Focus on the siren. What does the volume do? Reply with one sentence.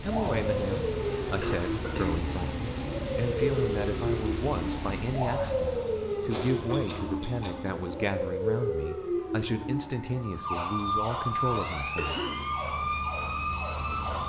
The loudness of the siren stays about the same.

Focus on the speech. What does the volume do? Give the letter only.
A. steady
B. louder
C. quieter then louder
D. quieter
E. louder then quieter
A.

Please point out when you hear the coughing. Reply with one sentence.
You can hear the coughing from 1.2 to 2.2 s, from 6.3 to 7.7 s and from 11.9 to 12.5 s.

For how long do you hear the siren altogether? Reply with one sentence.
You can hear the siren for 14 seconds altogether.